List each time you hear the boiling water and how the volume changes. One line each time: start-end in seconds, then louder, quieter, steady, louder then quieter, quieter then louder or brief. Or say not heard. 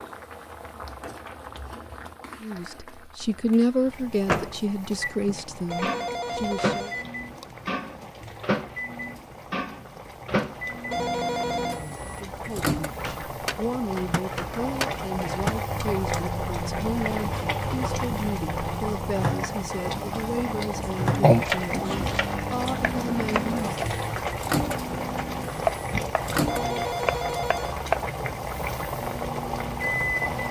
0.0-30.4 louder.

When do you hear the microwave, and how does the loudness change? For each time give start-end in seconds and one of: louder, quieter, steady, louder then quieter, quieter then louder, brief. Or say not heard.
4.2-26.9 steady
29.0-30.4 brief.